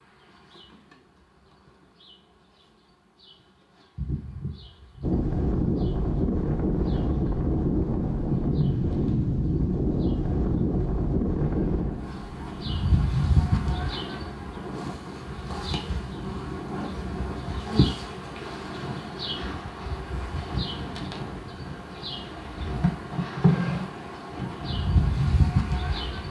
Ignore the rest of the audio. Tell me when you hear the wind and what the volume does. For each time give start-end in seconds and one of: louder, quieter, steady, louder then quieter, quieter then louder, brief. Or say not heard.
5.0-26.2 quieter.